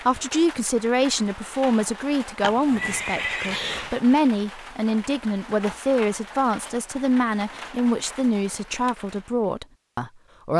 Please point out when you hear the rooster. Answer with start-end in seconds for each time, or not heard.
not heard.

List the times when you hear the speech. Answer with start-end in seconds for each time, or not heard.
0.1-10.5.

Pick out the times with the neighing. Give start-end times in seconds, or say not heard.
2.4-4.0.